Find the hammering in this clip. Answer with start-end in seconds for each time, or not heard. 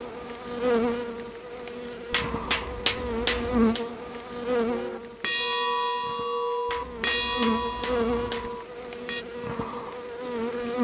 2.1-3.9, 6.7-8.5.